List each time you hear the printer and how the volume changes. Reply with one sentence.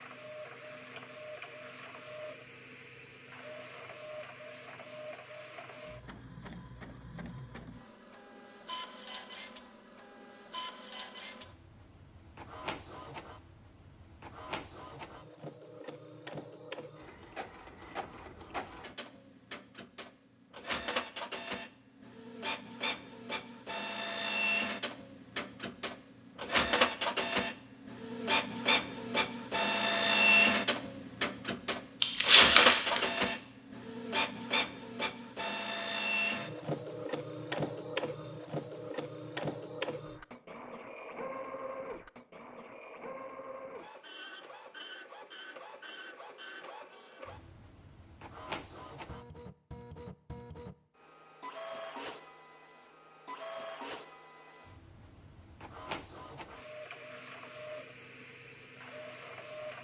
The printer can be heard from 0.0 to 59.7 s, getting louder then quieter.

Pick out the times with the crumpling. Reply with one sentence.
You can hear the crumpling from 32.0 to 33.3 s.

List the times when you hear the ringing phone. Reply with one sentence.
You can't hear the ringing phone here.